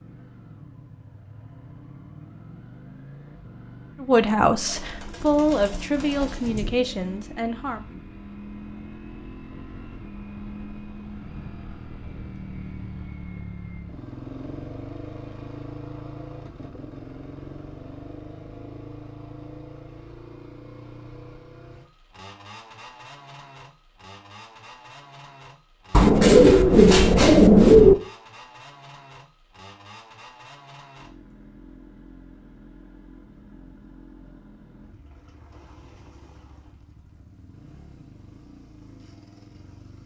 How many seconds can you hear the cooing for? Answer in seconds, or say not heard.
5 s.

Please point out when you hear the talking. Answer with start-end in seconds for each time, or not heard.
4.0-7.8.